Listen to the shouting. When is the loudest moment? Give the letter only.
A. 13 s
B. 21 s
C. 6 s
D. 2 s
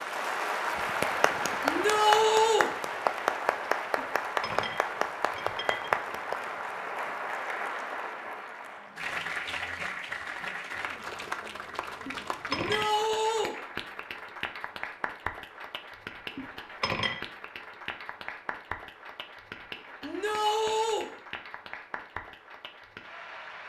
D.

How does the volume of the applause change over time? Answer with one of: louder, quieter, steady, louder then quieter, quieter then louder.
quieter.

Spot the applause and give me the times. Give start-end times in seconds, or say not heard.
0.0-23.6.